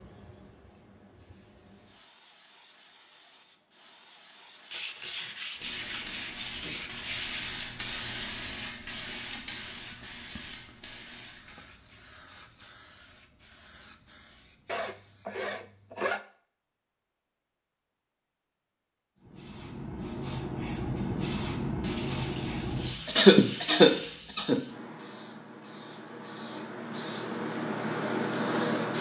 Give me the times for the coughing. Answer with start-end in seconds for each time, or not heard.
23.1-24.6.